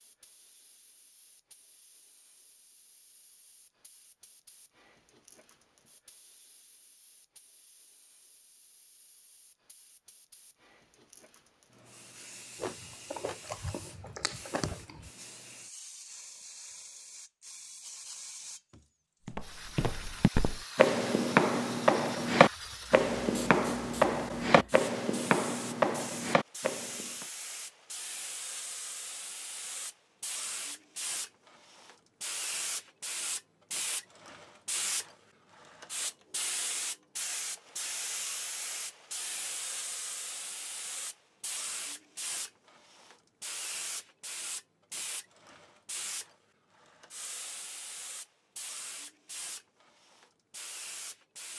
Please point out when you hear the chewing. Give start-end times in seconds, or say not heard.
12.6-15.1.